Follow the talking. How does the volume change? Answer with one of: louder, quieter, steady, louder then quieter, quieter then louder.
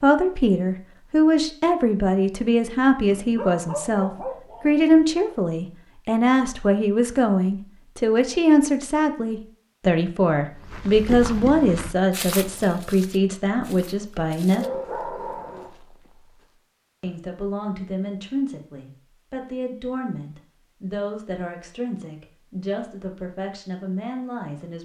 quieter.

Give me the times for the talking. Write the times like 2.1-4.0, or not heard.
0.0-14.7, 17.0-24.7.